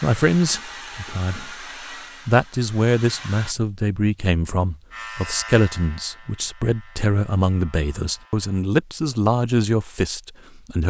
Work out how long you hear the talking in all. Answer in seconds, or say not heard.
10 s.